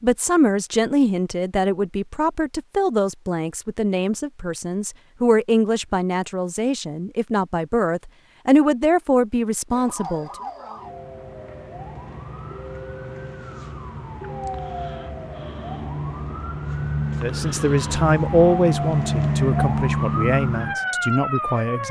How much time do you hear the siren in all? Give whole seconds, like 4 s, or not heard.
12 s.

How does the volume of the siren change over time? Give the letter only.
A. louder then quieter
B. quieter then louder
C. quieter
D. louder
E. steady
D.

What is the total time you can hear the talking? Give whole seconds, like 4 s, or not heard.
15 s.